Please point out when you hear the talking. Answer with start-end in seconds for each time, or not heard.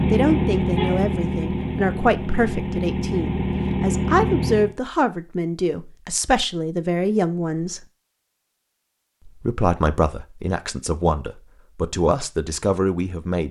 0.1-7.8, 9.2-13.4.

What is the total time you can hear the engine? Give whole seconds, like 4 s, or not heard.
5 s.